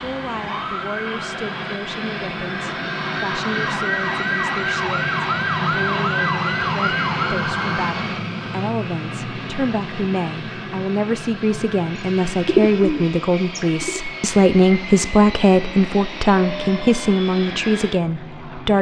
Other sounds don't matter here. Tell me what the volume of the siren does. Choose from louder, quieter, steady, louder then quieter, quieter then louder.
louder.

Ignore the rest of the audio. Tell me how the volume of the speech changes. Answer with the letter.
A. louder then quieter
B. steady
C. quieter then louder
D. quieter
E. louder
E.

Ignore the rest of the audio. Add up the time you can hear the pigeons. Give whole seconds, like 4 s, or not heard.
2 s.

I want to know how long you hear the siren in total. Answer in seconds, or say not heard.
8 s.